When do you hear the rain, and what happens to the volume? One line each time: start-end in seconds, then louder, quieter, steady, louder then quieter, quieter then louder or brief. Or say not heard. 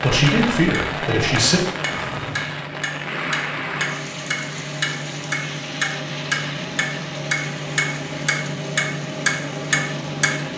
0.0-10.5 quieter.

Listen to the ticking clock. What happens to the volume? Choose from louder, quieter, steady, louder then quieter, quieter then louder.
louder.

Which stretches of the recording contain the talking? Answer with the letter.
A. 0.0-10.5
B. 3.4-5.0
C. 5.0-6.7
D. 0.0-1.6
D.